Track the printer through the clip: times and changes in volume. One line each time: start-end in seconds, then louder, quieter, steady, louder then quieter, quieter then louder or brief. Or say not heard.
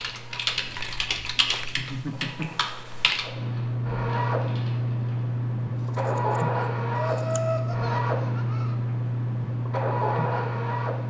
0.0-11.0 louder.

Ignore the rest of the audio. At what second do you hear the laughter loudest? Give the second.
7 s.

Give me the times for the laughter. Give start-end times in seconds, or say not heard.
1.6-2.5, 7.0-8.8.